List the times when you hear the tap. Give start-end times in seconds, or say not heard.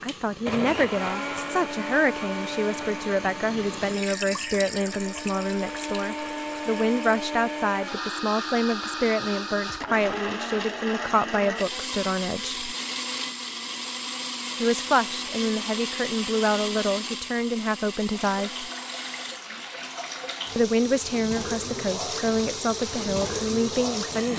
0.0-7.2, 18.1-24.3.